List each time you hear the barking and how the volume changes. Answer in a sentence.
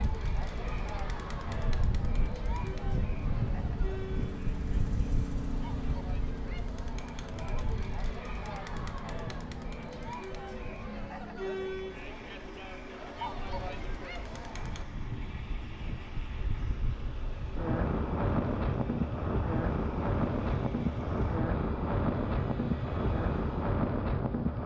The barking can't be heard in this clip.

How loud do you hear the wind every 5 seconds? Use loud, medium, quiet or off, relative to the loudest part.
medium, quiet, quiet, loud, loud.